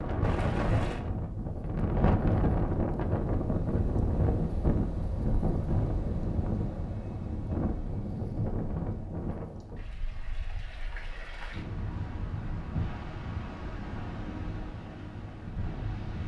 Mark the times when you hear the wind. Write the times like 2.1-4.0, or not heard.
0.0-16.2.